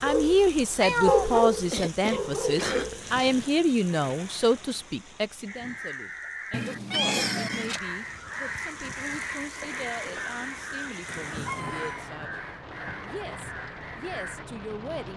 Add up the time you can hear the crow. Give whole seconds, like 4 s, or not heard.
9 s.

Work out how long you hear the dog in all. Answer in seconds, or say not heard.
3 s.